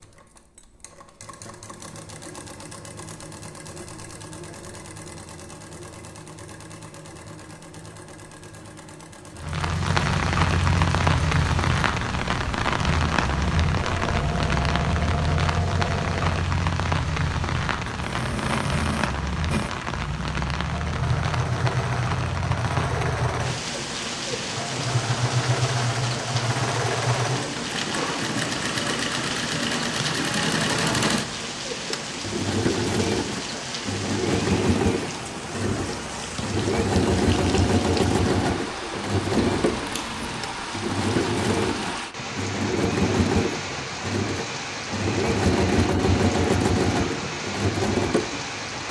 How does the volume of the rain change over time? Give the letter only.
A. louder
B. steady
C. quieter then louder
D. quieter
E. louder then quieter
D.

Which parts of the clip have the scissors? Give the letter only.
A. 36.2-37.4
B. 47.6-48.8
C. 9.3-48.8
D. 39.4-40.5
D.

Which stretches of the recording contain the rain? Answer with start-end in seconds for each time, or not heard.
9.3-48.8.